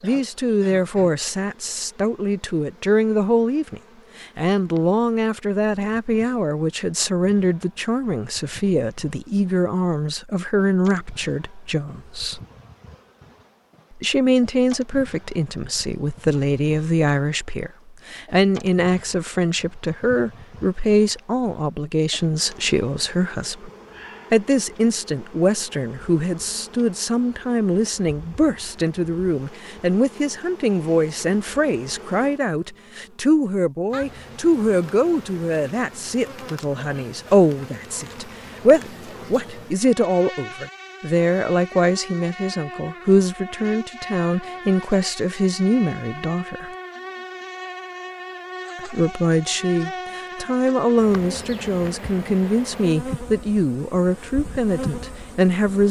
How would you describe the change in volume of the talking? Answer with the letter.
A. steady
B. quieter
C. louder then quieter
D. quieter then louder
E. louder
A.